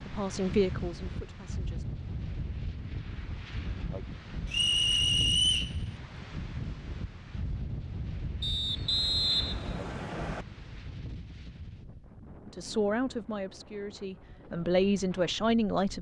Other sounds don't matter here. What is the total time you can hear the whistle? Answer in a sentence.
The whistle can be heard for 3 seconds in total.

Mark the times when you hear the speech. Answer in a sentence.
The speech can be heard from 0.0 to 1.9 s and from 12.4 to 15.9 s.